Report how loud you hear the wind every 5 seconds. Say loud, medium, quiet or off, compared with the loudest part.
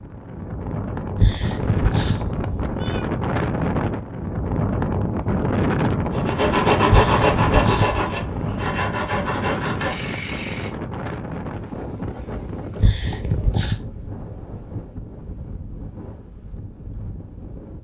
loud, loud, medium, quiet.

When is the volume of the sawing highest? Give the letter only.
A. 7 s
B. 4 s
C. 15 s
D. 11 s
A.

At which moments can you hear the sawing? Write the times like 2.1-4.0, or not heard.
6.1-10.7.